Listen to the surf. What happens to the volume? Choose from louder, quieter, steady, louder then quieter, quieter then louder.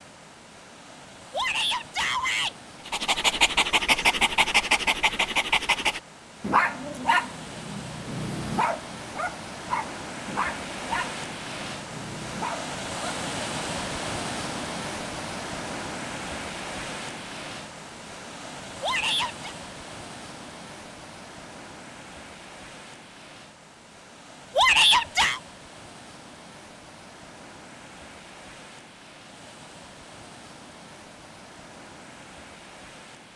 louder then quieter.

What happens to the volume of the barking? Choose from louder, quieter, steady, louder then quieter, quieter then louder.
quieter.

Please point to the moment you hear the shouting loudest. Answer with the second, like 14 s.
25 s.